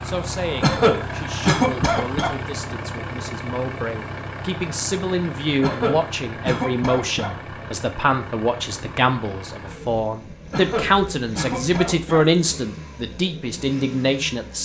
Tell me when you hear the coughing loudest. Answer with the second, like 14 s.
1 s.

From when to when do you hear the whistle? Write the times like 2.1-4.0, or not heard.
not heard.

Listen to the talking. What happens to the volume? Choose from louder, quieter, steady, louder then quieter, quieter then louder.
louder.